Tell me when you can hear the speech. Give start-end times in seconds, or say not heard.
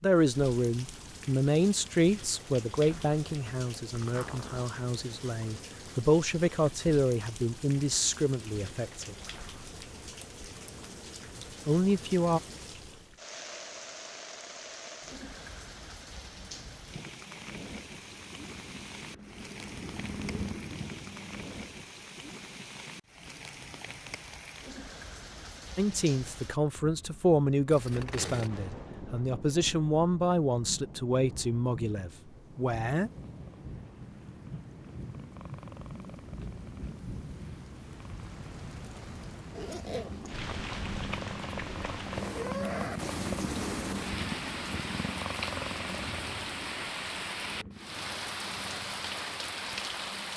0.0-9.2, 11.7-12.4, 25.8-33.1.